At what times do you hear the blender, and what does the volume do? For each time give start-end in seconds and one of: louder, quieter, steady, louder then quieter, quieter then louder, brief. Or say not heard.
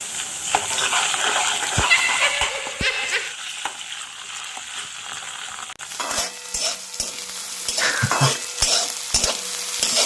not heard.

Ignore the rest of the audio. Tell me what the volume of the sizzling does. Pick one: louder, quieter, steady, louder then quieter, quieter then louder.
quieter then louder.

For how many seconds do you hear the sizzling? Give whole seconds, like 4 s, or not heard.
10 s.